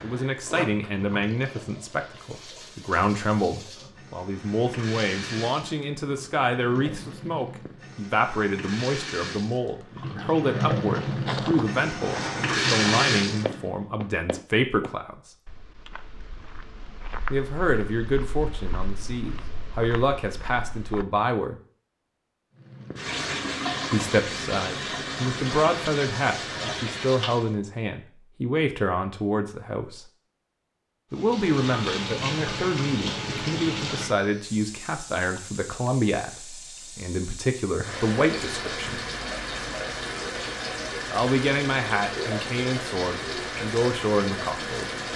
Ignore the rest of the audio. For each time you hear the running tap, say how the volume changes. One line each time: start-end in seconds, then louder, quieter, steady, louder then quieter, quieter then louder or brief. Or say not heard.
0.0-13.7 louder
22.6-27.6 steady
31.1-45.1 quieter then louder.